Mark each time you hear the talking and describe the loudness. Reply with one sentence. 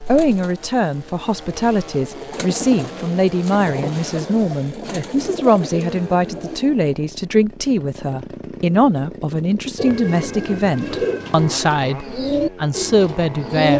You can hear the talking from 0.1 to 13.7 s, at a steady volume.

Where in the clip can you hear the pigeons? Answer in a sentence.
The pigeons can be heard from 0.1 to 6.6 s and from 9.8 to 13.7 s.